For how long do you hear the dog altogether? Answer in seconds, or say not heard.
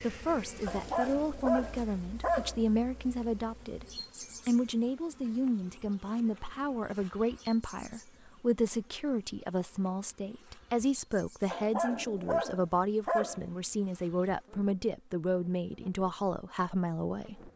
4 s.